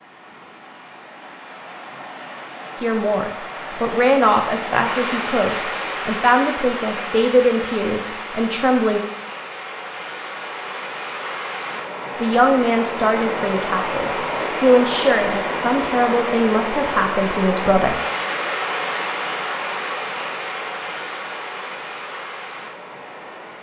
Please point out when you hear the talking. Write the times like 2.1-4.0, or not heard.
2.8-9.0, 12.2-18.0.